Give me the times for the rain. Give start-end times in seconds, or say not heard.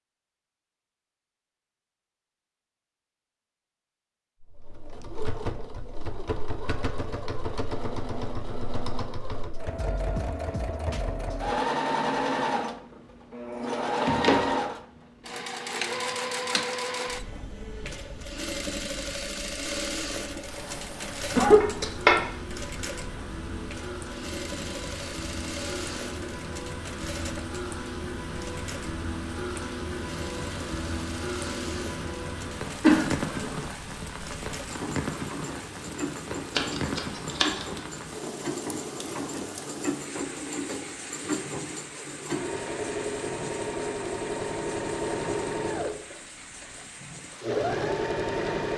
20.3-48.7.